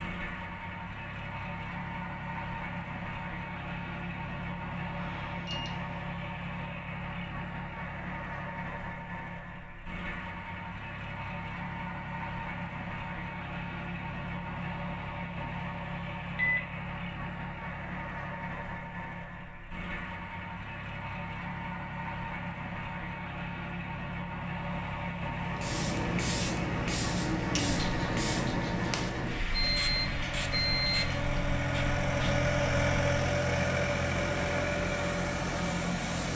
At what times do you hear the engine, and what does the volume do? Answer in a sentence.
You can hear the engine from 0.0 to 36.3 s, getting louder.